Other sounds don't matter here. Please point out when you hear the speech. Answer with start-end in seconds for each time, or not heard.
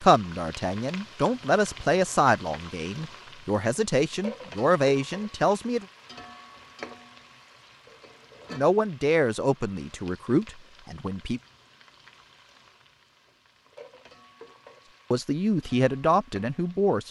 0.0-5.8, 8.5-11.4, 15.1-17.0.